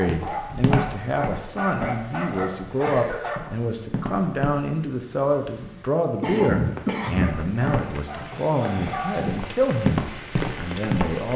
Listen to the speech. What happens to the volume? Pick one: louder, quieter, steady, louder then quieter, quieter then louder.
steady.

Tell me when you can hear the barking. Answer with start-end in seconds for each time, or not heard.
0.0-3.4, 7.2-9.3.